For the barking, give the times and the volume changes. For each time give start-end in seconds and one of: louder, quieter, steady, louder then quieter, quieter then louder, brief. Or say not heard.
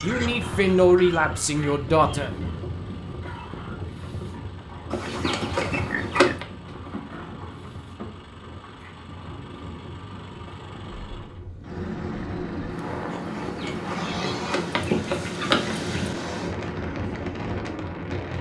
not heard.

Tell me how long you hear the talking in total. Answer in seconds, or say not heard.
2 s.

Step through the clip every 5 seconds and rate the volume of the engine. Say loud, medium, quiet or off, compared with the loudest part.
medium, medium, loud, loud.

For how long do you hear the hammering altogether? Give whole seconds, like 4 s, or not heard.
not heard.